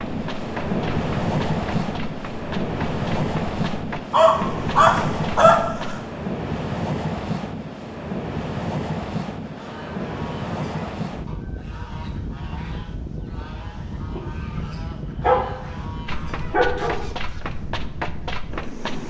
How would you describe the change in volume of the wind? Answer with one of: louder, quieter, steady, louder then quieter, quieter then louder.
quieter.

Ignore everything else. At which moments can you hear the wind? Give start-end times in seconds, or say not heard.
0.0-19.0.